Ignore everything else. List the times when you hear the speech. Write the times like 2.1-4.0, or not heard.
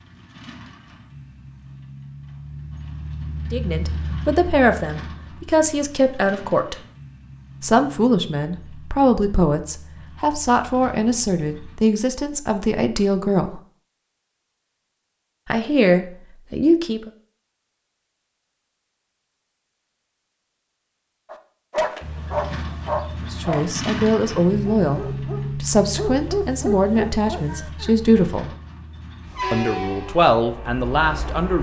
3.5-6.8, 7.6-13.6, 15.5-17.1, 23.3-28.5, 29.5-31.5.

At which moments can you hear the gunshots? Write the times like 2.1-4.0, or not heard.
not heard.